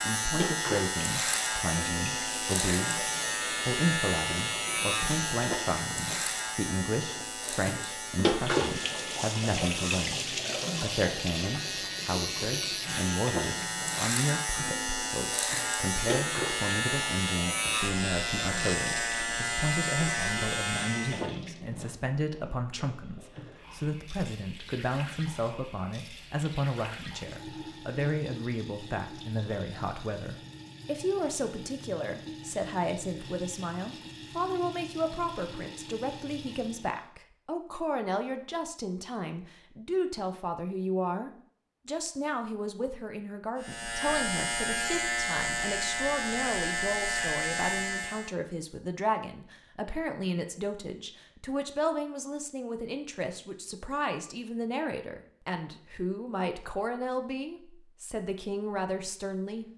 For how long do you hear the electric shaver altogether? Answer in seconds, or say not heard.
26 s.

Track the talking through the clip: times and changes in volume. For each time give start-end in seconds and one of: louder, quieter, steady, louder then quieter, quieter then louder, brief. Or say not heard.
0.0-59.6 steady.